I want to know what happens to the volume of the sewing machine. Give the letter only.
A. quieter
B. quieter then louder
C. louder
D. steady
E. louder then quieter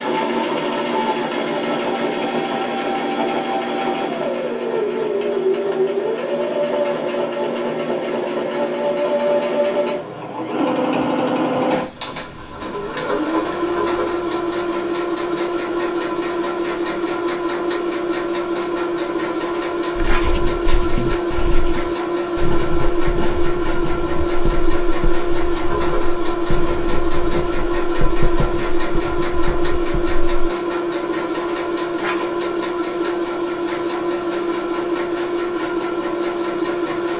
D.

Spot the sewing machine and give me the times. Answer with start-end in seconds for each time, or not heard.
0.0-37.1.